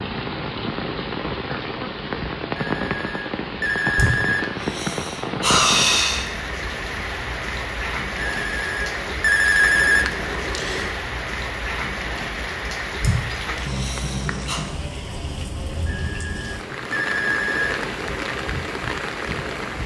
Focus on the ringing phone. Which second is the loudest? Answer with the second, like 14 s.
10 s.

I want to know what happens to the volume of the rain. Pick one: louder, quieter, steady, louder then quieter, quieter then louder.
steady.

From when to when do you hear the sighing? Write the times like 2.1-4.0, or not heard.
4.0-6.2, 13.0-14.6.